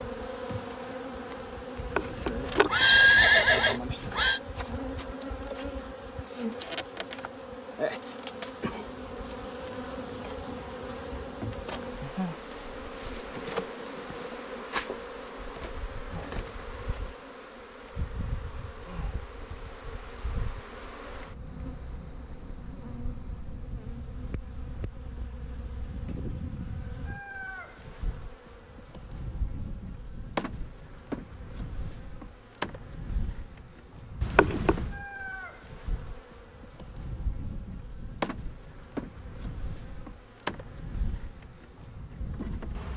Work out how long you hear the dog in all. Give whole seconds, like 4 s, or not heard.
not heard.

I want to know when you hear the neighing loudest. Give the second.
3 s.